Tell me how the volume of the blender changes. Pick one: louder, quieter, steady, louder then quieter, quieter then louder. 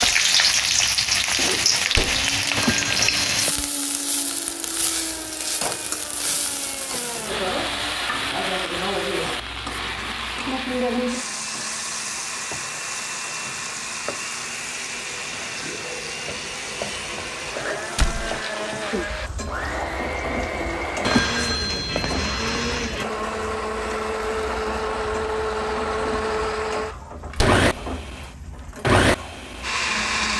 louder.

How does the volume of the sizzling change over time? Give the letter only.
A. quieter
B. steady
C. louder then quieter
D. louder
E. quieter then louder
A.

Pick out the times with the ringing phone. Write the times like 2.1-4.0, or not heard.
2.5-3.5, 21.0-23.1.